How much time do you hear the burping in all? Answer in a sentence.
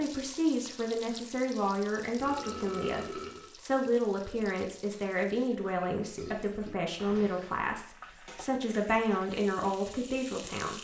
You can hear the burping for 3 seconds altogether.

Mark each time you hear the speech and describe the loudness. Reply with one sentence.
The speech can be heard from 0.0 to 10.7 s, at a steady volume.